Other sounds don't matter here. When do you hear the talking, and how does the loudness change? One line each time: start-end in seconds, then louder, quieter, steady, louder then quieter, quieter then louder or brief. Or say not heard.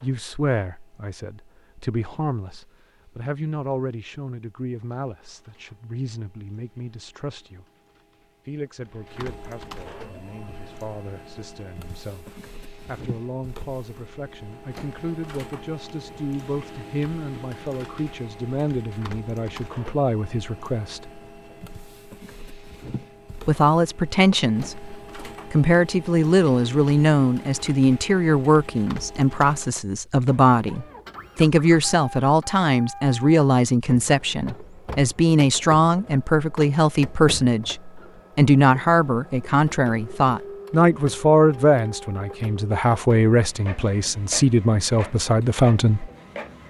0.0-7.7 quieter
8.4-21.1 louder
23.4-46.1 steady.